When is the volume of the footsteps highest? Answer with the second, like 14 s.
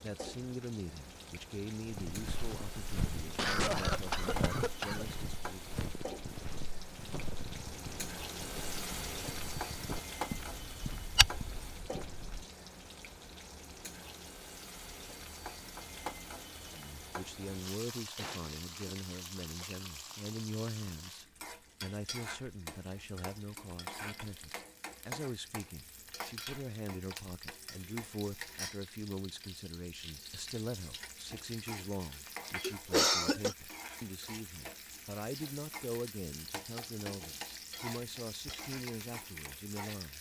11 s.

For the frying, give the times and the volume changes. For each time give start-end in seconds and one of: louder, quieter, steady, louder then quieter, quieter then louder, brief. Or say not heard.
0.0-40.1 steady.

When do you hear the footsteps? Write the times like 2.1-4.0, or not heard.
1.9-12.4.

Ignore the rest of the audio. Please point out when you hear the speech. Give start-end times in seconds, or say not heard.
0.0-5.7, 16.7-40.1.